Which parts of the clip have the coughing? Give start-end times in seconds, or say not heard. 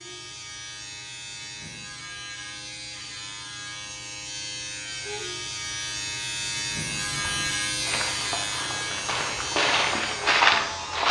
not heard.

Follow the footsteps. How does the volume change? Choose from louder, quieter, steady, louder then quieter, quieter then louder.
louder.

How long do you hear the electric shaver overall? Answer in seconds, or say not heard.
11 s.